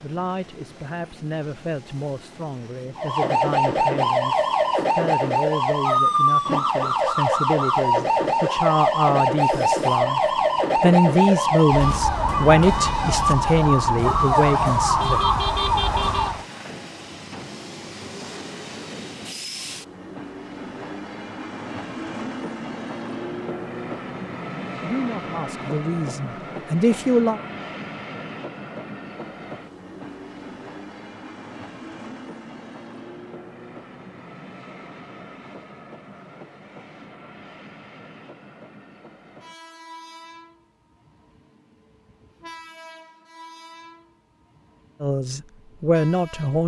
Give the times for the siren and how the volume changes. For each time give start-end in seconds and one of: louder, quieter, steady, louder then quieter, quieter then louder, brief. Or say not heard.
3.0-16.4 steady.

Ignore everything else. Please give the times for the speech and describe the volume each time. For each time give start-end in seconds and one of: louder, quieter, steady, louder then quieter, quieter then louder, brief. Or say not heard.
0.0-15.2 louder
24.8-27.4 brief
45.0-46.6 brief.